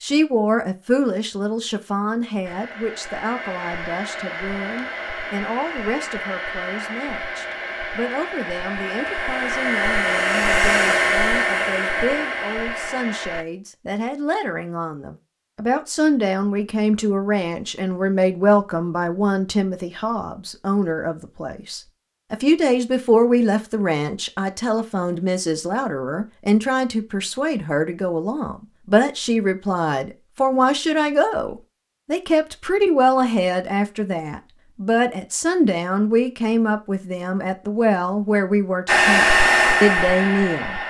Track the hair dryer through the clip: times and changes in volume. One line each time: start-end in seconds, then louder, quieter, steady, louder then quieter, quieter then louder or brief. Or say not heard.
2.5-13.4 louder
38.9-40.8 brief.